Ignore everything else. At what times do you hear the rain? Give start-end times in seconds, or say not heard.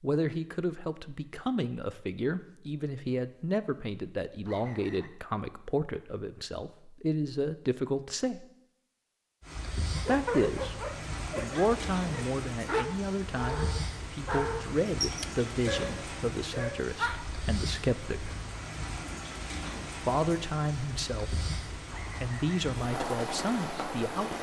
9.4-24.3.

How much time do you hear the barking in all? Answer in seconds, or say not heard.
7 s.